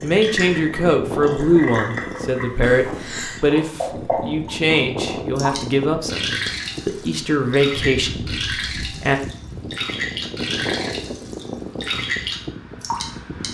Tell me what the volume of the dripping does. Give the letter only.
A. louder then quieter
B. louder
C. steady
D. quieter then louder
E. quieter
C.